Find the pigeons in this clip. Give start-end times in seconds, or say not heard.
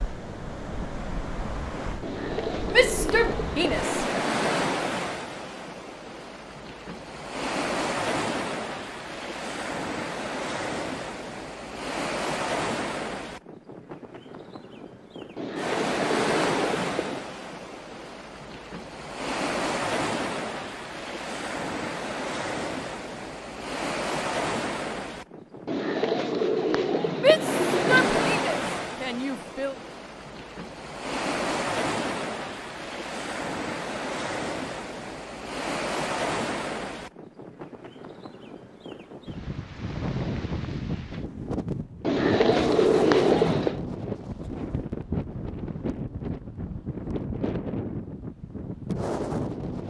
2.0-4.0, 15.3-17.2, 25.6-28.4, 42.0-43.8.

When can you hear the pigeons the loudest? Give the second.
43 s.